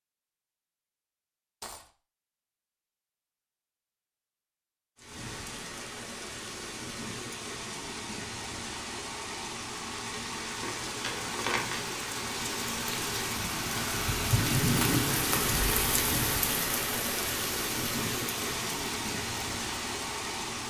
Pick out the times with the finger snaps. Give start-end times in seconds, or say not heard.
not heard.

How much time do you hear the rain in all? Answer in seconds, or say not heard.
16 s.